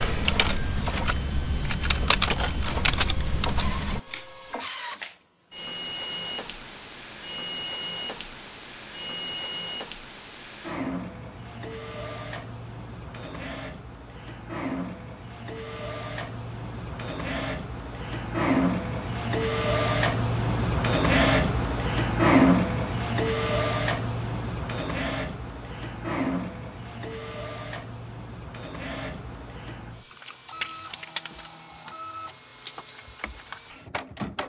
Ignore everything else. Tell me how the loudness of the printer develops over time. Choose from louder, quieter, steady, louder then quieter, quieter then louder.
louder then quieter.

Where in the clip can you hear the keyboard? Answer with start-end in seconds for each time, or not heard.
0.0-4.3.